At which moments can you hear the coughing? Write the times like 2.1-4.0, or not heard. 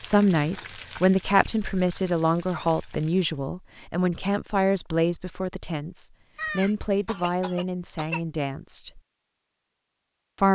6.3-8.2.